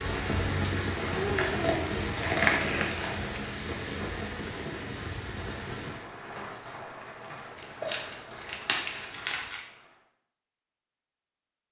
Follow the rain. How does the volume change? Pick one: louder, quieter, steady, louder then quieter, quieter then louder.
quieter.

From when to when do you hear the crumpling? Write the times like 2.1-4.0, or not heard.
1.2-3.4, 7.5-9.6.